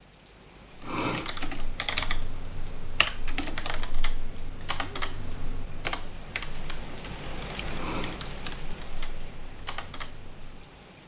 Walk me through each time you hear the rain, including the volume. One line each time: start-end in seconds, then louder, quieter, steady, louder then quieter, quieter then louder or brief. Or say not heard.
0.0-11.0 louder then quieter.